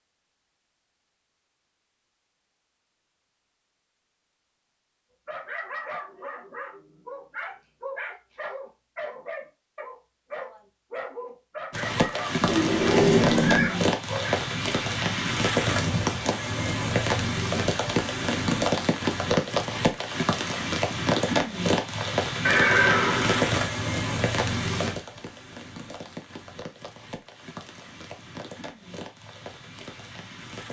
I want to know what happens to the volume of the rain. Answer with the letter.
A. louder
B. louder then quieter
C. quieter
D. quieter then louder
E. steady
C.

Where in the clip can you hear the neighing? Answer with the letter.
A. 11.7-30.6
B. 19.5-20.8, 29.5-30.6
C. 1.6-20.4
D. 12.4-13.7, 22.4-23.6
D.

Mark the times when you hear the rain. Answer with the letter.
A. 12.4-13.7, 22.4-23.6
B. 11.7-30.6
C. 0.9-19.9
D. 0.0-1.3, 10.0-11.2
B.